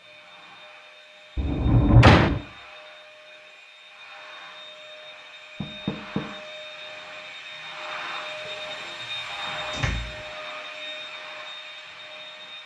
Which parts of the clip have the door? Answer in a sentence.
The door can be heard from 1.4 to 2.4 s, from 5.6 to 6.2 s and from 8.4 to 10.2 s.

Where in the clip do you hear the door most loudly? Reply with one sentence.
The loudest moment of the door is at 2 seconds.